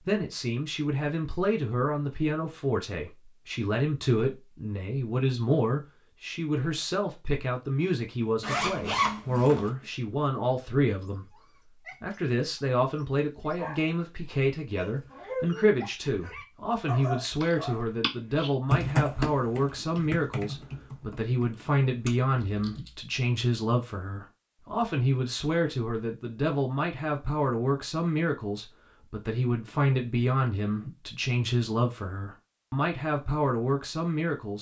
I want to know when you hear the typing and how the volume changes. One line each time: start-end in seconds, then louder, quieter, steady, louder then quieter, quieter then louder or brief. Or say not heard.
17.2-23.1 louder then quieter.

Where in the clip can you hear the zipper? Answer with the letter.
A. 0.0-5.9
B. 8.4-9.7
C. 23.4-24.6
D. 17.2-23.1
B.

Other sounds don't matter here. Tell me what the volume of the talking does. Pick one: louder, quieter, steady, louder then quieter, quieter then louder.
steady.